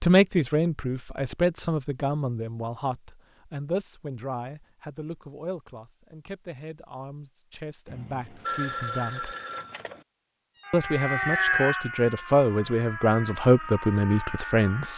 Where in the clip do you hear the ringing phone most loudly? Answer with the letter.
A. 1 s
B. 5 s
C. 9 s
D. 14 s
C.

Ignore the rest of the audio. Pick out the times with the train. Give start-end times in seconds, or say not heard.
not heard.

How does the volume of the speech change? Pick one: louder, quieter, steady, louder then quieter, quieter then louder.
quieter then louder.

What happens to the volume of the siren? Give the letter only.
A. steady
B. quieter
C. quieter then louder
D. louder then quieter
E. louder
B.